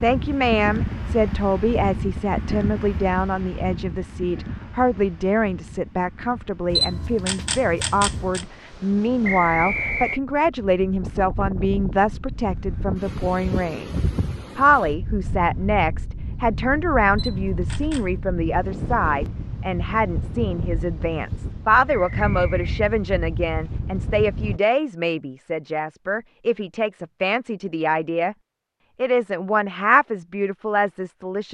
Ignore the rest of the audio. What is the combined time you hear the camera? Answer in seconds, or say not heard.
3 s.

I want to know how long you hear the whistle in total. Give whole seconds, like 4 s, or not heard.
2 s.